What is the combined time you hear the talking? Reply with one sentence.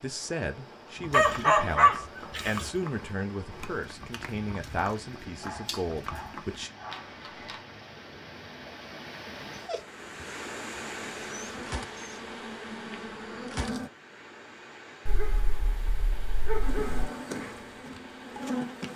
You can hear the talking for 7 seconds altogether.